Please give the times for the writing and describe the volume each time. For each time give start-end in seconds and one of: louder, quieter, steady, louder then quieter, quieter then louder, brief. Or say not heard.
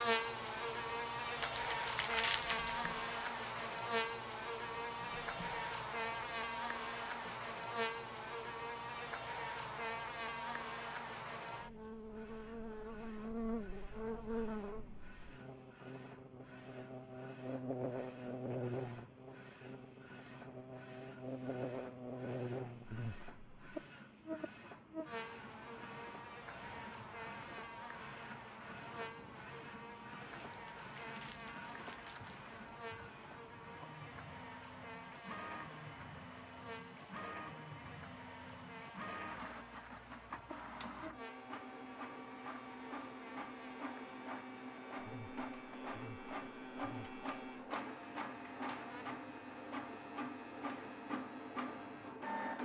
not heard.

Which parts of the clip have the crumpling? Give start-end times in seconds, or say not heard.
1.4-2.8, 30.4-32.9.